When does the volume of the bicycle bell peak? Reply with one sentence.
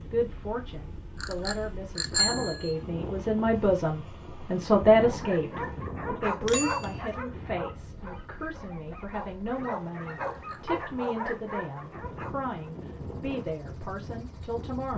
The loudest moment of the bicycle bell is at 2 seconds.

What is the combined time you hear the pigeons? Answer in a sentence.
You can't hear the pigeons here.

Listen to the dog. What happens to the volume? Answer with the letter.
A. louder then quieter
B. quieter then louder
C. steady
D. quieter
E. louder
B.